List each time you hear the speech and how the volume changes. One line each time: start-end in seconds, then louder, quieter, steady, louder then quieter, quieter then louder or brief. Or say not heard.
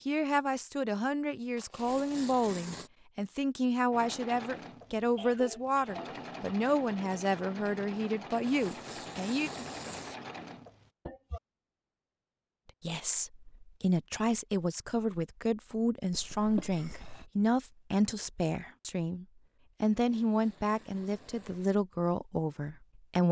0.1-9.5 steady
12.8-23.2 steady.